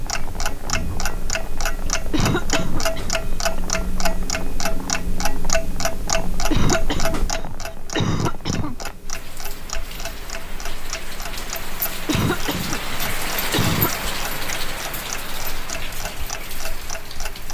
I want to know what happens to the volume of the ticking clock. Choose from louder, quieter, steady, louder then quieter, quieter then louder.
quieter.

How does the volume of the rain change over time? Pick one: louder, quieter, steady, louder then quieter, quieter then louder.
louder.